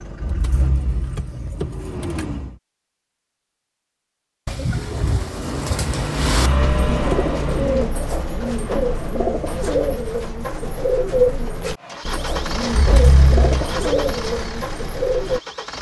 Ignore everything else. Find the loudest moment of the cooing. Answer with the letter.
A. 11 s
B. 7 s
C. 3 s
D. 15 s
A.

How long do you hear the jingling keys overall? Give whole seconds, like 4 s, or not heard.
4 s.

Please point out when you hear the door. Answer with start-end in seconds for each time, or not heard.
not heard.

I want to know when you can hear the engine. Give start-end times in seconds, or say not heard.
0.0-2.6, 4.7-8.0, 11.8-15.7.